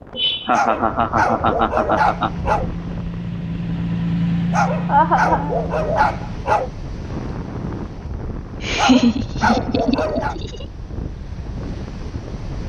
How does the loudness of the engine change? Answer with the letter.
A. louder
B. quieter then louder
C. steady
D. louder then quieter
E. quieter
D.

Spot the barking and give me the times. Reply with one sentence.
The barking can be heard from 0.5 to 2.7 s, from 4.5 to 6.7 s and from 8.8 to 10.3 s.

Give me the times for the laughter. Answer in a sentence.
You can hear the laughter from 0.1 to 2.3 s, from 4.8 to 6.2 s and from 8.6 to 10.7 s.